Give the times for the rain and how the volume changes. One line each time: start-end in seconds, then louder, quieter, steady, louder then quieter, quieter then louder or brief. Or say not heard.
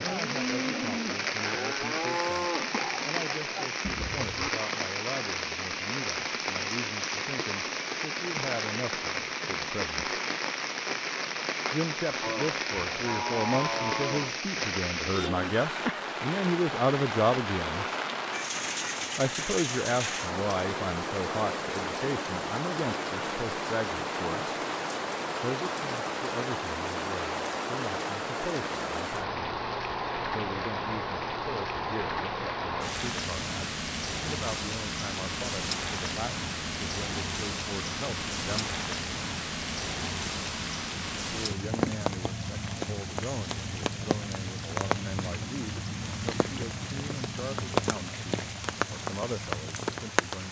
0.0-50.4 steady.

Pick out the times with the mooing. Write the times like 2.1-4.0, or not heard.
0.0-4.5, 12.2-14.3.